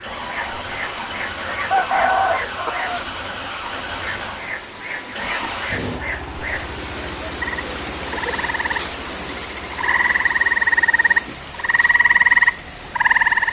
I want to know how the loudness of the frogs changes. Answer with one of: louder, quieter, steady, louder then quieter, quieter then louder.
louder.